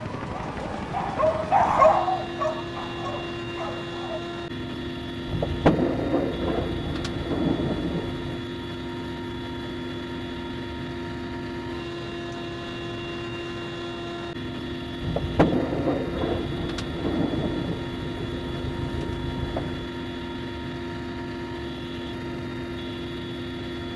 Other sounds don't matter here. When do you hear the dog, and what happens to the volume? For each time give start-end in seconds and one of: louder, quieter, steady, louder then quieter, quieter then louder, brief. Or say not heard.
0.0-4.2 louder then quieter.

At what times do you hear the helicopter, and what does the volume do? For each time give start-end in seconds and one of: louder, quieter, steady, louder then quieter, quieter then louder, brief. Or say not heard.
0.0-23.9 steady.